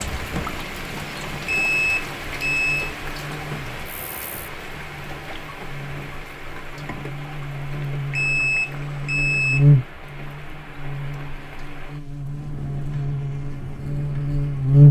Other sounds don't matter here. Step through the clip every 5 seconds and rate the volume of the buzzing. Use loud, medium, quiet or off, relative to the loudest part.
quiet, loud, loud.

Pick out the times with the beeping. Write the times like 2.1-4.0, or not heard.
1.4-3.0, 8.2-9.7.